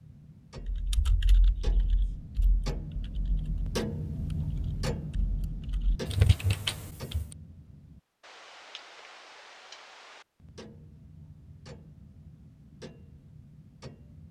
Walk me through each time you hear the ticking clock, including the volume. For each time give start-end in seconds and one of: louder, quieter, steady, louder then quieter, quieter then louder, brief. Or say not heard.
0.0-14.2 louder then quieter.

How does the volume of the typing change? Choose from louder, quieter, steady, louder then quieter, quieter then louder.
quieter then louder.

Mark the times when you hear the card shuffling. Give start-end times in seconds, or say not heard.
not heard.